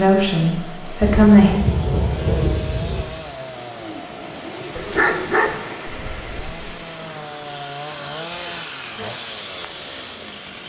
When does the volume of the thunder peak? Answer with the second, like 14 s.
2 s.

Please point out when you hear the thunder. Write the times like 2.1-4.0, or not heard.
1.0-3.0.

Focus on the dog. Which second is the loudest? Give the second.
5 s.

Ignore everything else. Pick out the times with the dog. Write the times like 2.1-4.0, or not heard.
4.8-6.6.